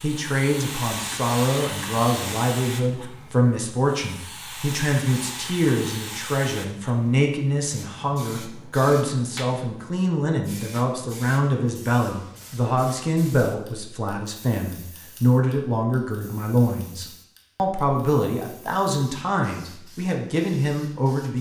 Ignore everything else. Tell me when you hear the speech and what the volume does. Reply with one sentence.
You can hear the speech from 0.0 to 21.3 s, at a steady volume.